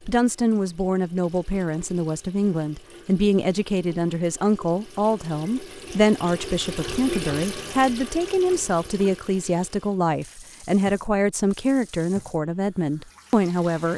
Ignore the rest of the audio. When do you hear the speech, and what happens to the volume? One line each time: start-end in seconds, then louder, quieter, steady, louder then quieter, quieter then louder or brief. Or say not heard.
0.1-13.9 steady.